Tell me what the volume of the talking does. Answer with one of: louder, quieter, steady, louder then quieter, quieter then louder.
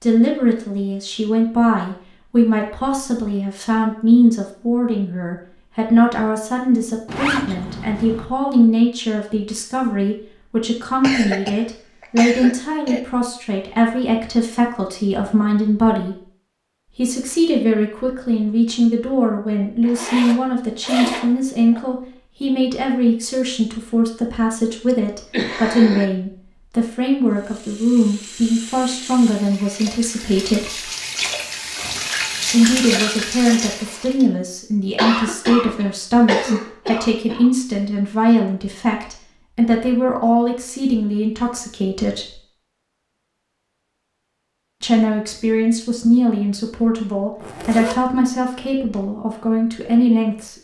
steady.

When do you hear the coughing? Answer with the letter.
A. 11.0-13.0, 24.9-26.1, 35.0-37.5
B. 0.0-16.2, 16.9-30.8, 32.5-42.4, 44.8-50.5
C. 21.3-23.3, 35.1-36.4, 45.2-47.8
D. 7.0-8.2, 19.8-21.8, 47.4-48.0
A.